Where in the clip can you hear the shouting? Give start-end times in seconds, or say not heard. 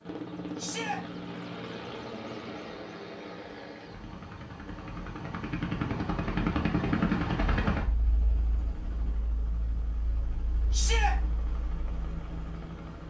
0.6-1.0, 10.7-11.2.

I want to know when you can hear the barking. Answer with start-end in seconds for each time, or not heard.
not heard.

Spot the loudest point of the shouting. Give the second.
11 s.